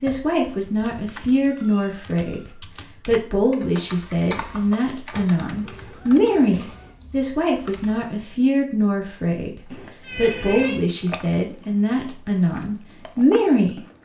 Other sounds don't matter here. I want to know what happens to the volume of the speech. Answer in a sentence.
The volume of the speech stays about the same.